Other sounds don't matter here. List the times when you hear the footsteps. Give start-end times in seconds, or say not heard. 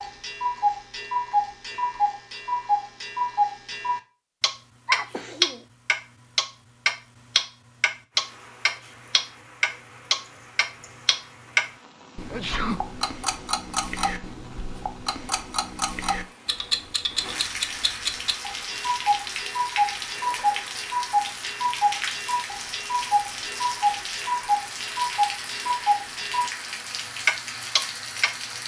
not heard.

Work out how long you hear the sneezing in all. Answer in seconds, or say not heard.
2 s.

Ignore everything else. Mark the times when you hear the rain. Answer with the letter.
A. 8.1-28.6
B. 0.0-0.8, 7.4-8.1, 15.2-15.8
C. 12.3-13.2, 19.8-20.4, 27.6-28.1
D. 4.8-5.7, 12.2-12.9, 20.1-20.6
A.